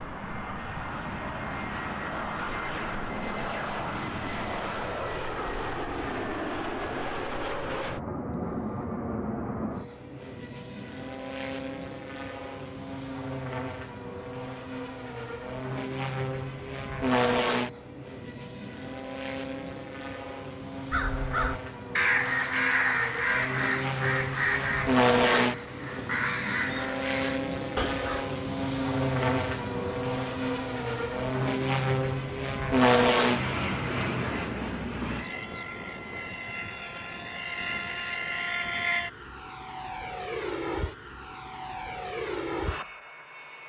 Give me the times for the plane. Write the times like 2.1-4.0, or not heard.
0.0-43.6.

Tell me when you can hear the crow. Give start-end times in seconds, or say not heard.
20.9-28.2.